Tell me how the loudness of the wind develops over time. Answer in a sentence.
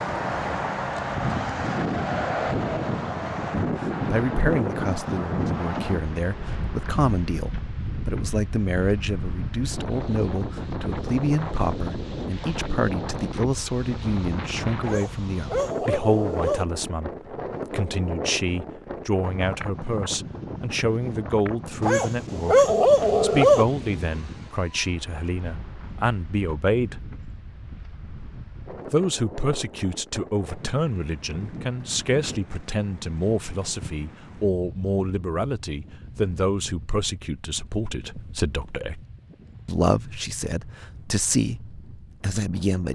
The volume of the wind goes down.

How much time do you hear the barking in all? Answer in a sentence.
The barking can be heard for 4 seconds in total.